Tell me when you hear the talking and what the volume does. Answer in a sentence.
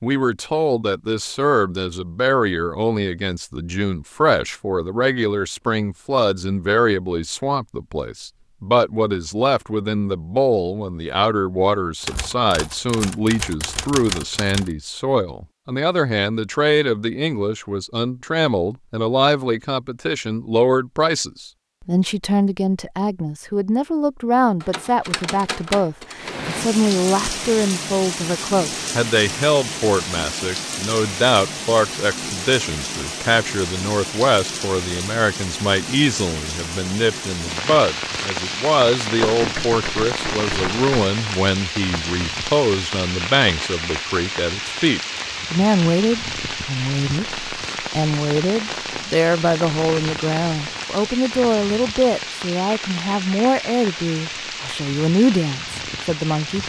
You can hear the talking from 0.0 to 56.6 s, at a steady volume.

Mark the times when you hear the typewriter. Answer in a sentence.
You can hear the typewriter from 12.0 to 14.7 s, from 24.6 to 26.4 s and from 39.1 to 41.1 s.